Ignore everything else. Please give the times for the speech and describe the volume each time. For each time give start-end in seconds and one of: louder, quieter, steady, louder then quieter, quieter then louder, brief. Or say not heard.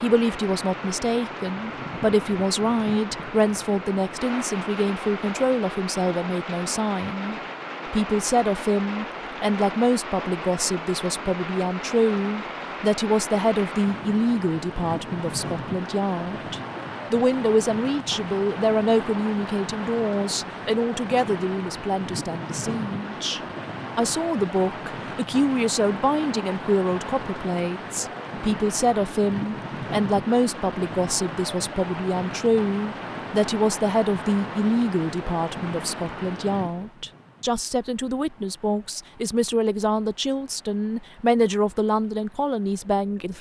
0.0-43.3 steady.